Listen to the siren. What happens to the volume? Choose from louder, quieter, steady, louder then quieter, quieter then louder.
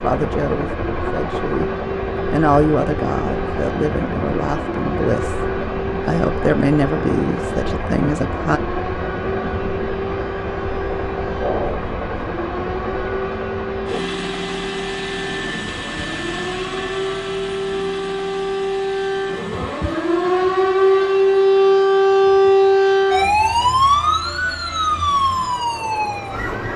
louder.